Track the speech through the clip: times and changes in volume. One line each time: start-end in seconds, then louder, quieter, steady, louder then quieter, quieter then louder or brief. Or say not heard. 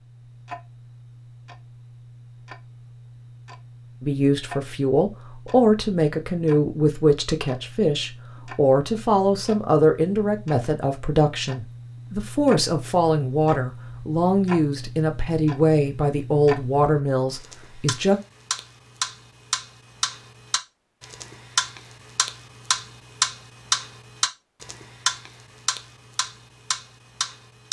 4.0-18.2 steady.